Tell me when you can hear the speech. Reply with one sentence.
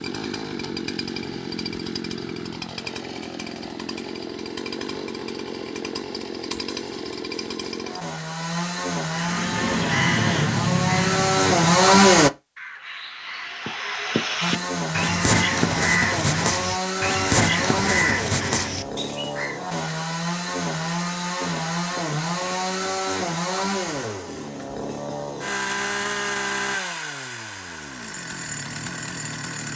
You can't hear the speech here.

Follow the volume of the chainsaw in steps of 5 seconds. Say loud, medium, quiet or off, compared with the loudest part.
quiet, medium, loud, medium, medium, medium.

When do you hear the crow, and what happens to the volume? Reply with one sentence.
You can hear the crow from 9.1 to 19.6 s, getting quieter then louder.